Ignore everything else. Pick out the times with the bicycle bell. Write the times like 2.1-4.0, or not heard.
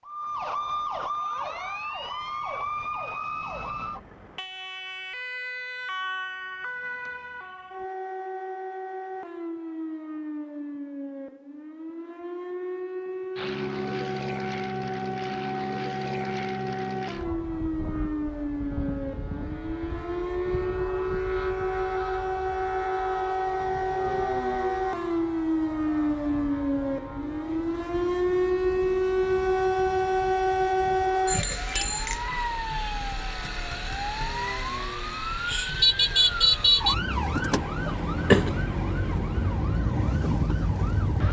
31.2-32.2.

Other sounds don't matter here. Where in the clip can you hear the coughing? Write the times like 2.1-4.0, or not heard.
37.9-38.5.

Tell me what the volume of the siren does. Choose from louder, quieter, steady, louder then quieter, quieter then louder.
louder.